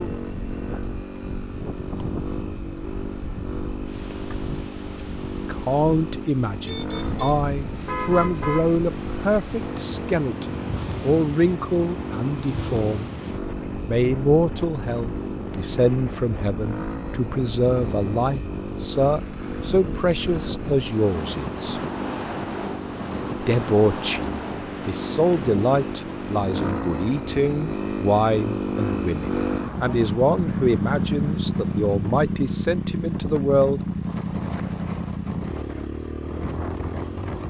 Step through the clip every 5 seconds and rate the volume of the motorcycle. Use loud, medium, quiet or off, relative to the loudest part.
medium, medium, medium, medium, medium, loud, loud, medium.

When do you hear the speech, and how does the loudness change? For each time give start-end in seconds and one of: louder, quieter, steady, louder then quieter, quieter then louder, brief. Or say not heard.
5.5-13.1 steady
13.8-21.8 steady
23.4-33.8 steady.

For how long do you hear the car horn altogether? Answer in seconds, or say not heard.
2 s.